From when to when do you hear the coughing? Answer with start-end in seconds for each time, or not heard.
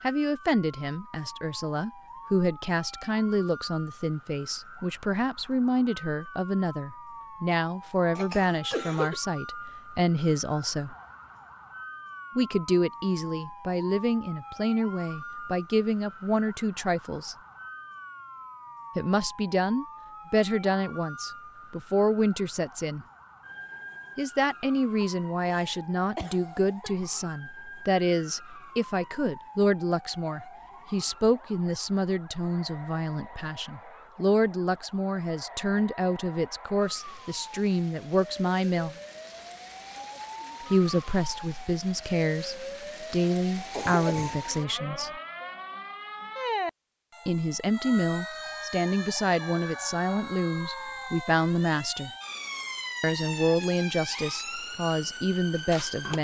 8.2-9.2, 25.0-26.9, 43.7-44.5.